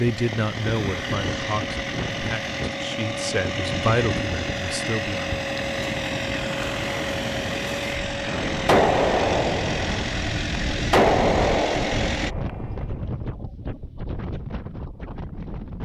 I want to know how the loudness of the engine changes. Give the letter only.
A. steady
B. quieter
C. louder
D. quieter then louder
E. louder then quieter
A.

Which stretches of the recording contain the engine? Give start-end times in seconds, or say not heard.
0.0-12.3.